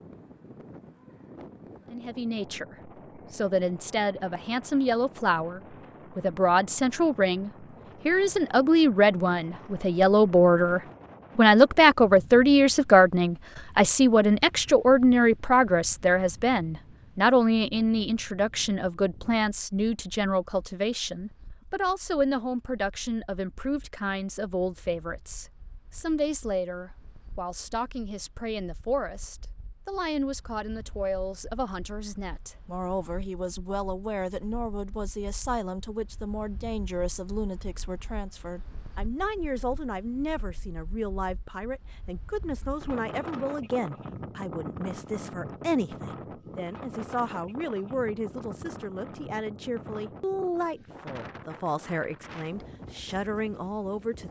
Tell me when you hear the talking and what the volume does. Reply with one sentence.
The talking can be heard from 1.9 to 54.2 s, getting quieter.